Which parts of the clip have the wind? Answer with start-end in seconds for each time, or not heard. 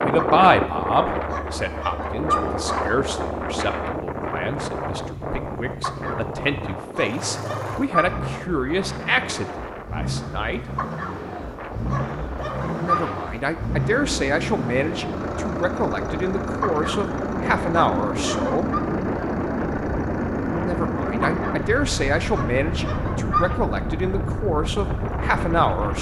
0.0-25.9.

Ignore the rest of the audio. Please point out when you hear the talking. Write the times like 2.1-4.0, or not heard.
0.0-10.6, 12.6-18.7, 20.4-25.9.